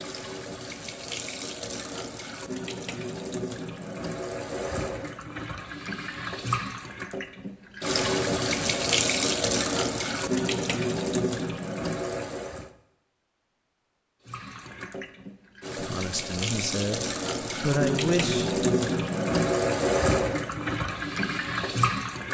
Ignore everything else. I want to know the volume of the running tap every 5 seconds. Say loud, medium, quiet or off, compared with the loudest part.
medium, loud, loud, loud, loud.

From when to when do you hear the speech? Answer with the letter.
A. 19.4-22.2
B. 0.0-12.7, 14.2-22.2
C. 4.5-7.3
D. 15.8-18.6
D.